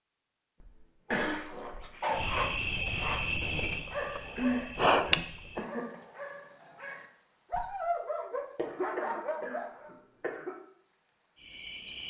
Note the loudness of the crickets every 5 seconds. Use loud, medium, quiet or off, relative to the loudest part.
loud, medium, quiet.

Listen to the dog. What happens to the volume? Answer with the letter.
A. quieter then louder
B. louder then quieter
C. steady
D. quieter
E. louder
A.